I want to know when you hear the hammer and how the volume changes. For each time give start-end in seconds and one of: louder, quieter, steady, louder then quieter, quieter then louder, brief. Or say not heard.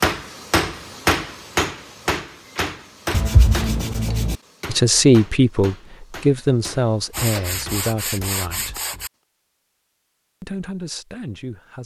0.0-8.8 quieter.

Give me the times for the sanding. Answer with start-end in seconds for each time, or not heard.
3.1-4.3, 7.1-9.1.